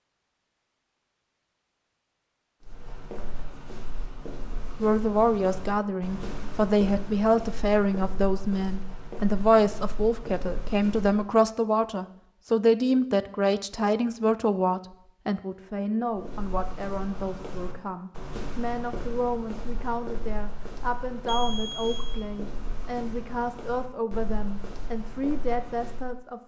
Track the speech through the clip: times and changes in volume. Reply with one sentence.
You can hear the speech from 4.8 to 26.4 s, getting quieter.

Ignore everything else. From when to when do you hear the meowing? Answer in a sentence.
The meowing can't be heard in this clip.